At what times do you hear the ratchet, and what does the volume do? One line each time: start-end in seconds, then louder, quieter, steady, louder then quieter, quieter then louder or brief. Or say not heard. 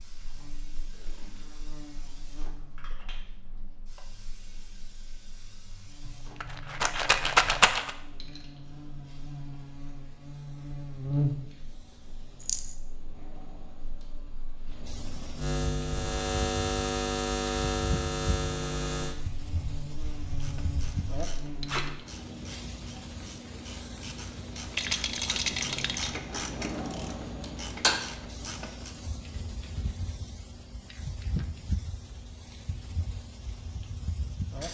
20.4-28.9 louder.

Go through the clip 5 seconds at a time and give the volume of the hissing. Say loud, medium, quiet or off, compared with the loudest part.
quiet, quiet, quiet, loud, loud, loud, loud.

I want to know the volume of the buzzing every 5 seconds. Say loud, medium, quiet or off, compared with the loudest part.
quiet, quiet, loud, loud, medium, off, off.